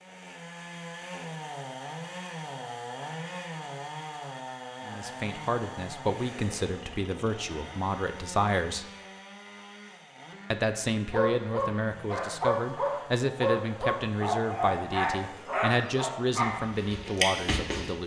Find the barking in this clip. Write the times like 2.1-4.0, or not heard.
11.1-17.9.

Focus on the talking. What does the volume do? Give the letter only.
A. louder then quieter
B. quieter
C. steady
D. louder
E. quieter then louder
C.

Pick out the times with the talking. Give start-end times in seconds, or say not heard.
4.8-8.8, 10.5-18.0.